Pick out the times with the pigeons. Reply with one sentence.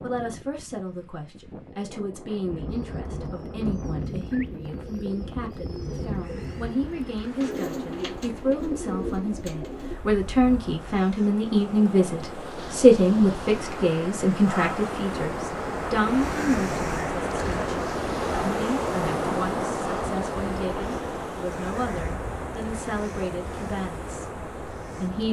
The pigeons can be heard from 2.5 to 10.0 s.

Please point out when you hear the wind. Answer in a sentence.
You can hear the wind from 0.0 to 25.2 s.